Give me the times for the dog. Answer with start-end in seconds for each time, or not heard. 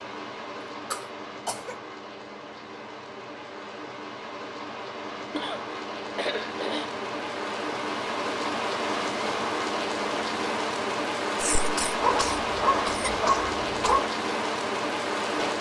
12.0-14.1.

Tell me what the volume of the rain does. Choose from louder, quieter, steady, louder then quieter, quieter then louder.
louder.